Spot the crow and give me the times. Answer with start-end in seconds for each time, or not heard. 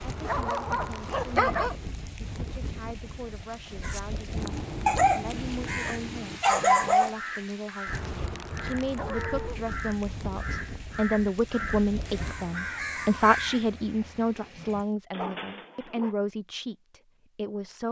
3.8-14.8.